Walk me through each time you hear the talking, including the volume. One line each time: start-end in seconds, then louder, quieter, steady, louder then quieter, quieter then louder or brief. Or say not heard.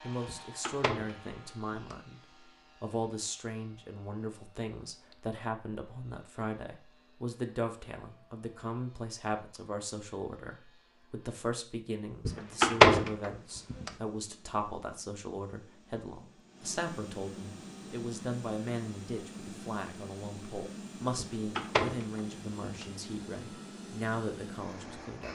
0.0-2.2 brief
2.8-25.2 steady.